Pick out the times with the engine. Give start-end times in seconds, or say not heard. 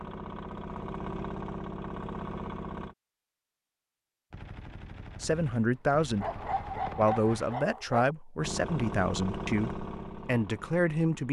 0.0-3.0, 8.3-11.2.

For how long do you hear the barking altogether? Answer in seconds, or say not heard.
2 s.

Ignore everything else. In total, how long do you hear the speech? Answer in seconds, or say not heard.
6 s.